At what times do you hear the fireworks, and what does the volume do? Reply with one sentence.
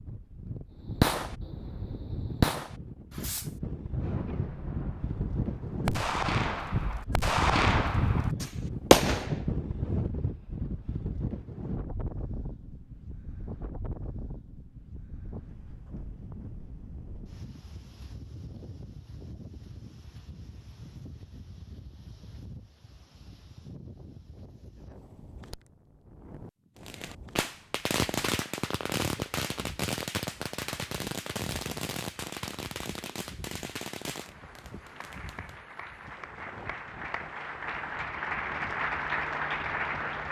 The fireworks can be heard from 0.8 to 9.4 s, getting quieter then louder; and from 26.9 to 35.5 s, getting quieter.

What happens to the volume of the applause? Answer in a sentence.
The volume of the applause goes up.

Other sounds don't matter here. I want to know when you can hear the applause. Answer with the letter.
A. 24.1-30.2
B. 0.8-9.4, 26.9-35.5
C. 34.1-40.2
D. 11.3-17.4
C.